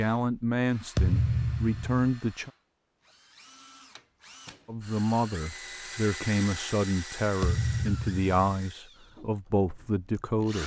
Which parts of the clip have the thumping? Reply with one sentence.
You can hear the thumping from 0.9 to 2.0 s and from 7.4 to 8.3 s.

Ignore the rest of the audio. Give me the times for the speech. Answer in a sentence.
The speech can be heard from 0.0 to 2.5 s and from 4.7 to 10.6 s.